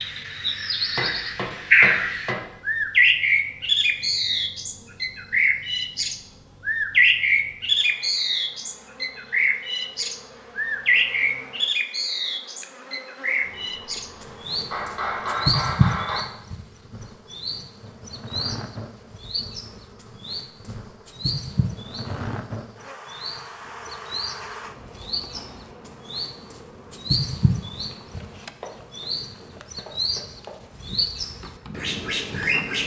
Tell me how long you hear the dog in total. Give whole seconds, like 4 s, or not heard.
not heard.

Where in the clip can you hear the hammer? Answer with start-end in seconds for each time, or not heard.
0.9-2.5, 14.7-16.2, 28.1-30.6.